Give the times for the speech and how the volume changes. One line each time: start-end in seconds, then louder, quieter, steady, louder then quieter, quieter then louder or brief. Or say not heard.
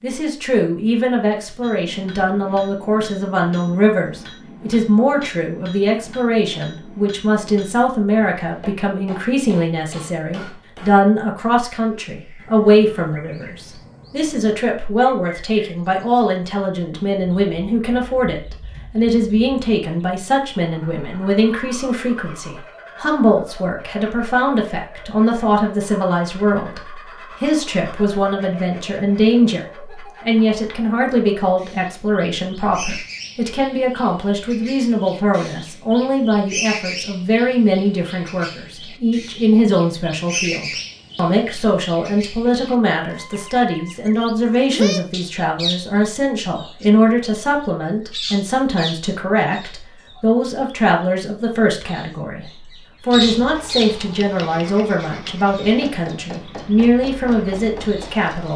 0.0-58.5 steady.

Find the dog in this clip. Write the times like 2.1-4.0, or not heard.
not heard.